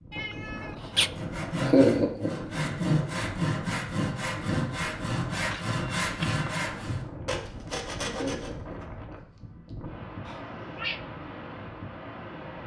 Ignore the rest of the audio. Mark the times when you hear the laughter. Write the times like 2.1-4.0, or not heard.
1.6-2.3, 8.1-8.8.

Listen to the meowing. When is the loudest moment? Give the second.
1 s.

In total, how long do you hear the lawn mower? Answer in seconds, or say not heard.
not heard.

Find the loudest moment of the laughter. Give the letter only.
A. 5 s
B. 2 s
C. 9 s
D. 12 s
B.